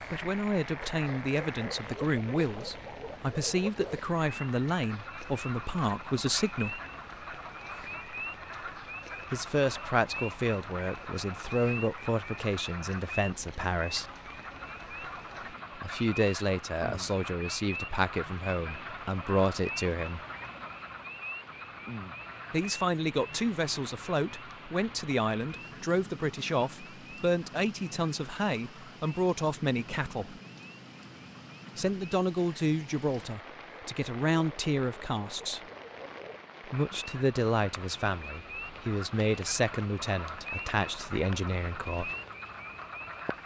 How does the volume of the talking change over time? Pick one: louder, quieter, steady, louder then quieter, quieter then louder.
steady.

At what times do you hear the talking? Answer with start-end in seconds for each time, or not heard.
0.1-6.8, 9.3-14.1, 15.8-20.2, 22.5-30.4, 31.8-35.6, 36.6-42.1.